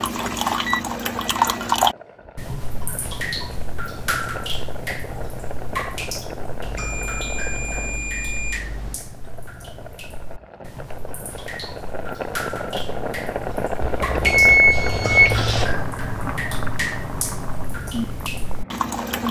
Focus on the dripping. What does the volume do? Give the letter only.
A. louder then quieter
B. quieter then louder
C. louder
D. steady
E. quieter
B.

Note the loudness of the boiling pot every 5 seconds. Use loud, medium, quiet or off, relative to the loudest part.
medium, medium, loud, loud.